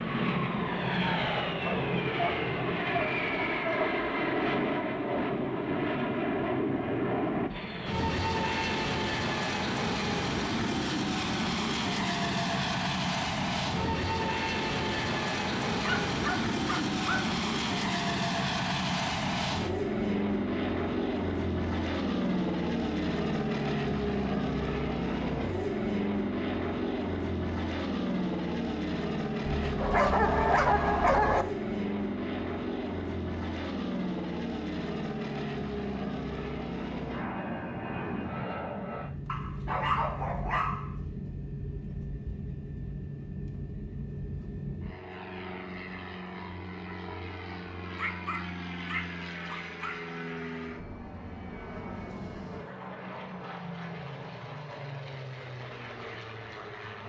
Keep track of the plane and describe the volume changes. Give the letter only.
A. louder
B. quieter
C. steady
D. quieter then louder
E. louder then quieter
B.